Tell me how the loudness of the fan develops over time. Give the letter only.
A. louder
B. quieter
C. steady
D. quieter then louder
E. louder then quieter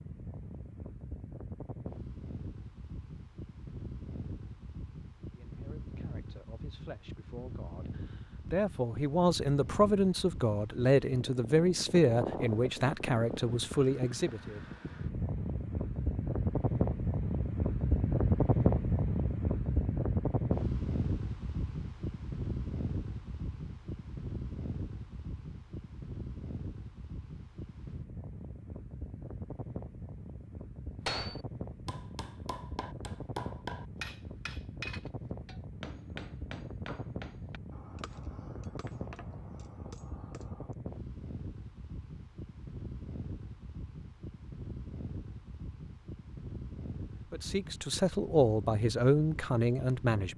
E.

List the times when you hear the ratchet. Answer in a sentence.
The ratchet can't be heard in this clip.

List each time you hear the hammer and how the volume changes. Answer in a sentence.
You can hear the hammer from 31.1 to 40.8 s, getting louder then quieter.